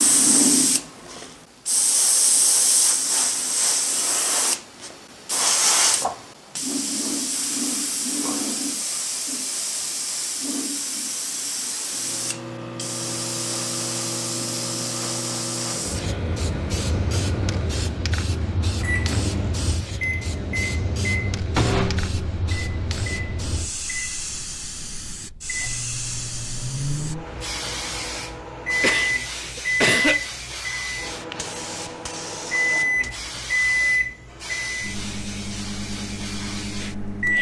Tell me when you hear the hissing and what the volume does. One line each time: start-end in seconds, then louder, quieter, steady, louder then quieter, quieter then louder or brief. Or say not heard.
0.0-37.3 quieter.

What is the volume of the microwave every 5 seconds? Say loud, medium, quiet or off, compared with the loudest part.
off, off, medium, medium, loud, loud, loud, loud.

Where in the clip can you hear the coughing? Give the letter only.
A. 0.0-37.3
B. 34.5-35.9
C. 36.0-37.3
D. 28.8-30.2
D.